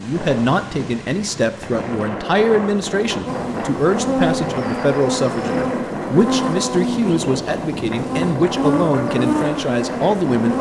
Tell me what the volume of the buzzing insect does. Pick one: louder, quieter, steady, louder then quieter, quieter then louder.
steady.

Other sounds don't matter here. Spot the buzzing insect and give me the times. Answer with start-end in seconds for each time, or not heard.
3.2-10.5.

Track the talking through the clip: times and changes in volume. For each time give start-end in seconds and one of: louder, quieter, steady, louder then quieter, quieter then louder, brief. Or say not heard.
0.0-10.5 steady.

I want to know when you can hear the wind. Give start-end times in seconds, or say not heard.
0.0-10.5.